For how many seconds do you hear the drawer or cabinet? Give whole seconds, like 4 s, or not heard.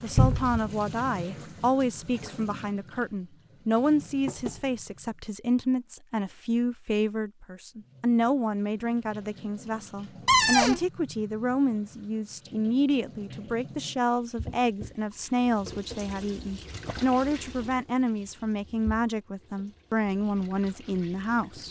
2 s.